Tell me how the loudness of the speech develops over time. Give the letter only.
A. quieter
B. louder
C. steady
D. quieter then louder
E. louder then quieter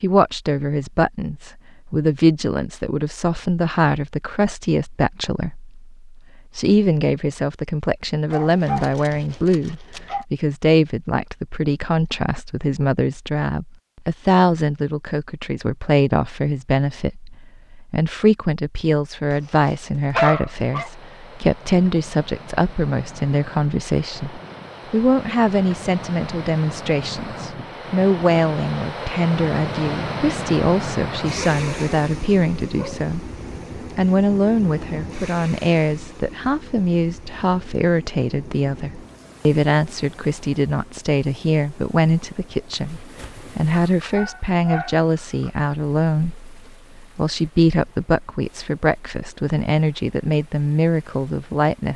C.